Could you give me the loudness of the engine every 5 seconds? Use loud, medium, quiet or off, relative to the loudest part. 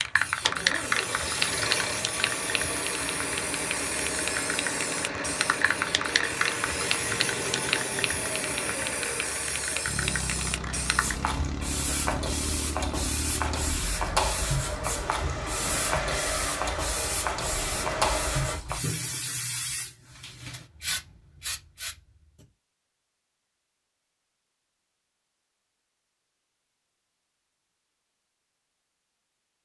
loud, loud, loud, loud, off, off.